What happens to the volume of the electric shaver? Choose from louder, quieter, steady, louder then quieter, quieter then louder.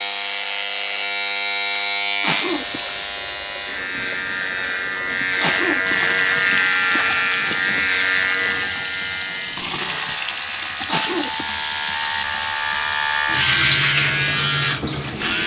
quieter then louder.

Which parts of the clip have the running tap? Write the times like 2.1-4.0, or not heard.
2.5-15.4.